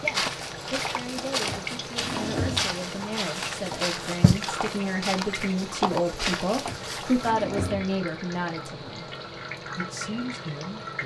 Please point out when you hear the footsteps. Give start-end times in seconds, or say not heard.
0.0-7.3.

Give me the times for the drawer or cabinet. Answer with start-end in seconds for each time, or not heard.
1.4-2.9, 6.7-8.0.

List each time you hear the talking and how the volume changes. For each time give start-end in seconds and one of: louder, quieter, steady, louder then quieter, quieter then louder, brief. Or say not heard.
0.0-9.1 louder
9.8-11.0 brief.